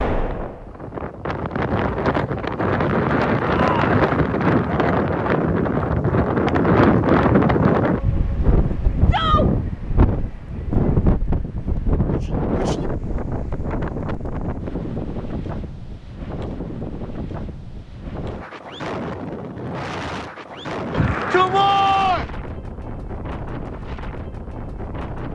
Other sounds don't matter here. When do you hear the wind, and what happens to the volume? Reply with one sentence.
The wind can be heard from 0.0 to 25.3 s, getting quieter.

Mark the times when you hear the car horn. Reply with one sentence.
You can't hear the car horn here.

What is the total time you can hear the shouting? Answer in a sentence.
You can hear the shouting for 2 seconds altogether.